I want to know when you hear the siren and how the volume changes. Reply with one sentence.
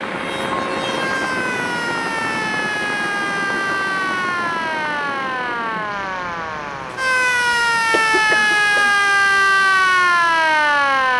You can hear the siren from 0.0 to 11.1 s, getting louder.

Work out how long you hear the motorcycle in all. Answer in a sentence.
The motorcycle can't be heard in this clip.